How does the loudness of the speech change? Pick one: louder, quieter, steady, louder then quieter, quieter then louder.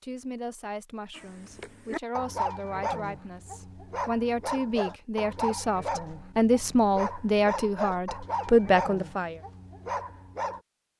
louder.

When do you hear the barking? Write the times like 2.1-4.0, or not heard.
1.1-10.6.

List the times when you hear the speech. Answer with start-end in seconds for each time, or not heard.
0.0-9.4.